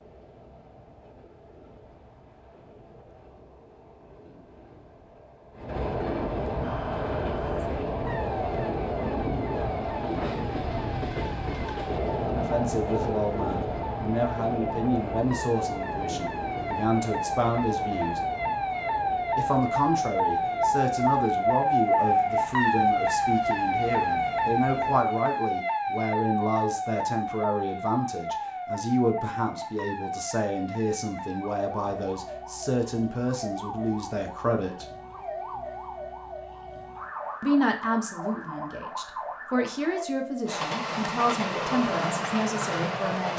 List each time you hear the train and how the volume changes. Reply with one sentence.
The train can be heard from 0.0 to 25.1 s, getting louder then quieter; and briefly from 40.5 to 43.3 s.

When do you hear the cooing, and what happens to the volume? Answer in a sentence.
You can't hear the cooing here.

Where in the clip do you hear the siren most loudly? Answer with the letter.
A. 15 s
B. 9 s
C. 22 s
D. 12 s
C.